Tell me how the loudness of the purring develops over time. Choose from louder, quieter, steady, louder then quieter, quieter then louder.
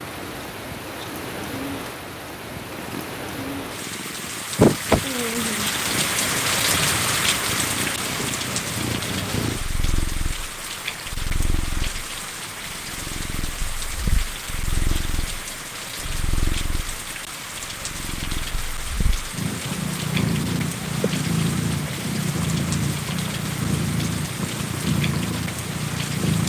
quieter then louder.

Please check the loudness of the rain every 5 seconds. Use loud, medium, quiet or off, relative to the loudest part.
medium, loud, medium, medium, medium, medium.